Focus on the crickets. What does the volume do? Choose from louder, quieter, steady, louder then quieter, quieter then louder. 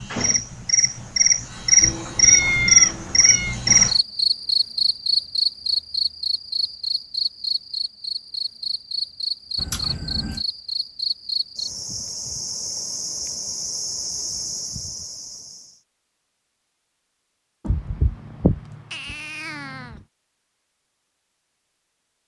quieter.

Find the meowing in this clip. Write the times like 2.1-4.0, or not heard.
1.8-3.5, 9.6-10.4, 17.6-19.8.